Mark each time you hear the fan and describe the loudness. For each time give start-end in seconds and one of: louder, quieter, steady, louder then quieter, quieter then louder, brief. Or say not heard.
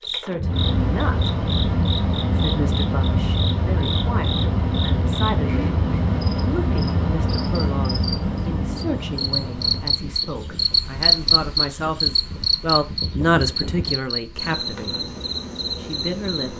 0.0-14.0 quieter.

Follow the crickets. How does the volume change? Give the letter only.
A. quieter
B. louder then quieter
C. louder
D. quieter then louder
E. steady
B.